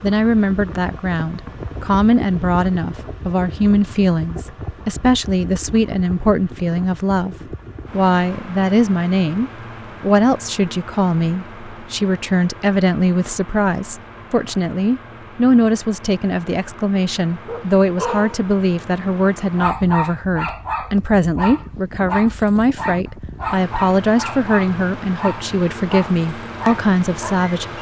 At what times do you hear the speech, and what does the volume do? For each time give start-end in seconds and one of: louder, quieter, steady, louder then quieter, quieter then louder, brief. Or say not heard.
0.0-27.7 steady.